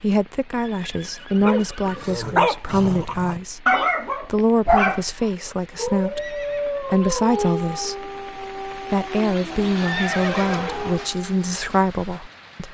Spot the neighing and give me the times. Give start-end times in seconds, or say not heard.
0.6-2.1, 6.2-6.9, 9.5-11.1.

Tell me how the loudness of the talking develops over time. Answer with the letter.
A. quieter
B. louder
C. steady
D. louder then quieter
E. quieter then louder
C.